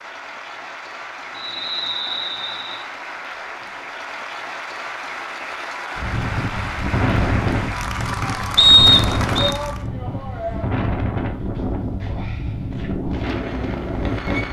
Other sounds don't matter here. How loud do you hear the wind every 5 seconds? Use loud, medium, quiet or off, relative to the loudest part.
off, loud, loud.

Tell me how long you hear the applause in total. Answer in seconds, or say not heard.
10 s.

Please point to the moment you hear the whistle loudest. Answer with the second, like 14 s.
9 s.